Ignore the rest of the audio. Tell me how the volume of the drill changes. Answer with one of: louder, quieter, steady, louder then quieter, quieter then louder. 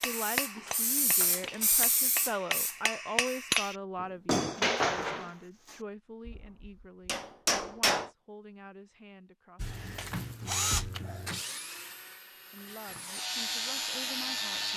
quieter then louder.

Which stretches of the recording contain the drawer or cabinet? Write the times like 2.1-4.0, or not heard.
not heard.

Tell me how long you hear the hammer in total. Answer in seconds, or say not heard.
8 s.